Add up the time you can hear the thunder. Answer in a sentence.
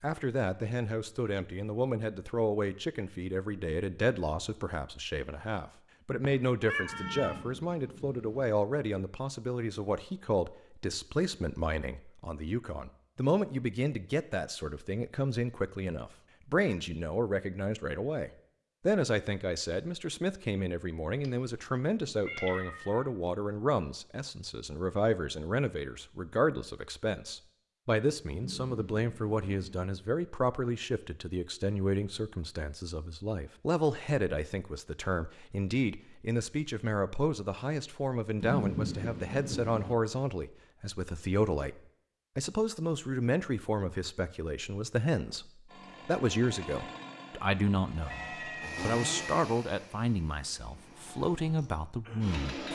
The thunder can be heard for 5 seconds in total.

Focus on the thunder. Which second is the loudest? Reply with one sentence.
The volume of the thunder peaks at 39 seconds.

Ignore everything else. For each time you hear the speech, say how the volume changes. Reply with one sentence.
The speech can be heard from 0.0 to 52.7 s, at a steady volume.